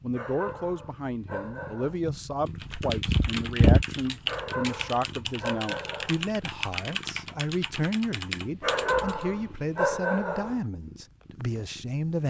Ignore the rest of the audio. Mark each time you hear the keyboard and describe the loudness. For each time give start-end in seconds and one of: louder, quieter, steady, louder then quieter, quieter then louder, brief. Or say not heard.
2.5-9.2 steady.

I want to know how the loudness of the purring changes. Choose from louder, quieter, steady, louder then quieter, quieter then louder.
louder then quieter.